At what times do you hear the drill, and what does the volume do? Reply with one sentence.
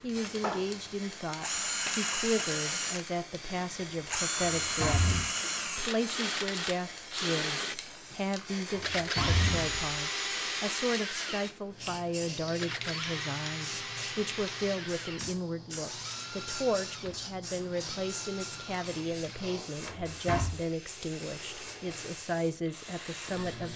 You can hear the drill from 0.0 to 23.7 s, getting quieter.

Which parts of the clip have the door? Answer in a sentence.
The door can be heard from 4.3 to 5.2 s, from 8.7 to 9.9 s and from 19.9 to 20.5 s.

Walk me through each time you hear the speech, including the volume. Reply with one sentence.
The speech can be heard from 0.0 to 23.7 s, at a steady volume.